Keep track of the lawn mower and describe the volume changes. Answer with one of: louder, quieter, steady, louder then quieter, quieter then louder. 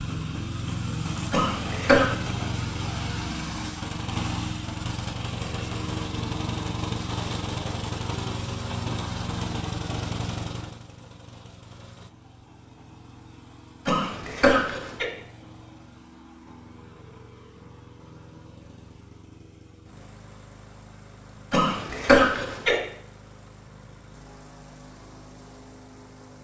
quieter.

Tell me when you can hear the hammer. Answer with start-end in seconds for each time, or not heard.
not heard.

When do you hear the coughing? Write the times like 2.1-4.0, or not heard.
1.3-2.1, 13.8-15.1, 21.5-22.8.